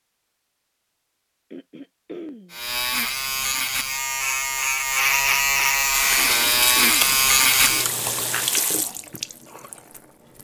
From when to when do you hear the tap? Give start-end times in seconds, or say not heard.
5.9-10.3.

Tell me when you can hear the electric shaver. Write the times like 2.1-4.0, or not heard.
2.5-8.6.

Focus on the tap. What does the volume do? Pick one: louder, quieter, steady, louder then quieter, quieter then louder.
quieter.